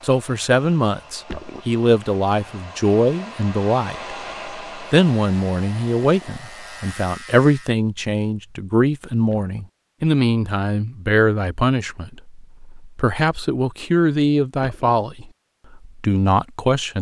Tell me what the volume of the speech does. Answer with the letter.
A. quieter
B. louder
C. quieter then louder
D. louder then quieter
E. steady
E.